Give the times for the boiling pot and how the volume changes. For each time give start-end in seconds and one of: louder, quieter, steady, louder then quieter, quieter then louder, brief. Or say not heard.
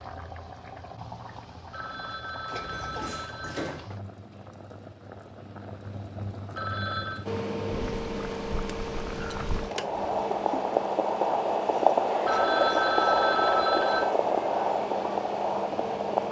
0.0-16.2 louder.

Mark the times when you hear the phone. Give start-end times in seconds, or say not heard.
1.7-3.6, 6.5-7.2, 12.2-14.2.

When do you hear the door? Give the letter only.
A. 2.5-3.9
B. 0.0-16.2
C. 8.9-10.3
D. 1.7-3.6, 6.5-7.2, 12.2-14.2
A.